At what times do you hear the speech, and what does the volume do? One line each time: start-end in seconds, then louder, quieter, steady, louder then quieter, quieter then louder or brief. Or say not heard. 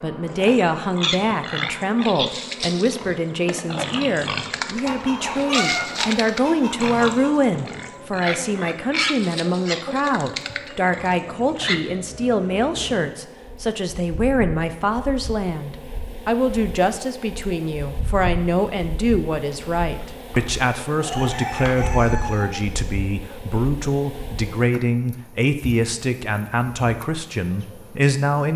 0.0-28.5 steady.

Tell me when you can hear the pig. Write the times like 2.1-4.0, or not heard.
0.2-11.8.